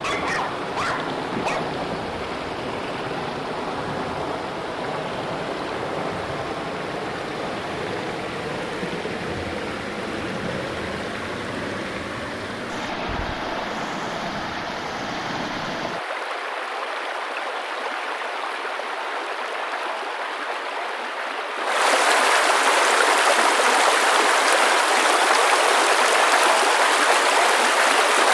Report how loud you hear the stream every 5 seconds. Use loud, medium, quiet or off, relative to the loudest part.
medium, medium, medium, medium, loud, loud.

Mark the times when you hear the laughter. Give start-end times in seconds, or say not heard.
not heard.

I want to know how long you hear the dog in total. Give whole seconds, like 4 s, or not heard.
2 s.